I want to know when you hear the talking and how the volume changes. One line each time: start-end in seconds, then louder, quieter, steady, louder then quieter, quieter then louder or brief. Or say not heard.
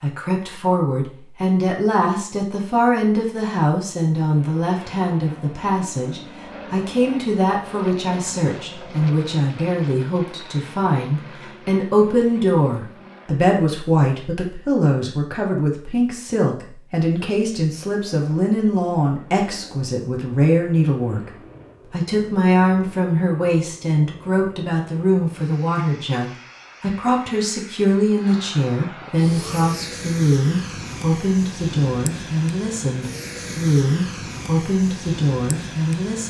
0.0-36.2 steady.